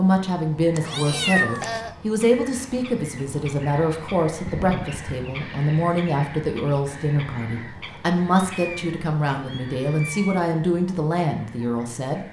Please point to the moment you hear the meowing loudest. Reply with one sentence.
The volume of the meowing peaks at 1 second.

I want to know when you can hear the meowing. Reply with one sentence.
You can hear the meowing from 0.8 to 1.9 s, from 4.5 to 5.0 s and from 8.4 to 10.4 s.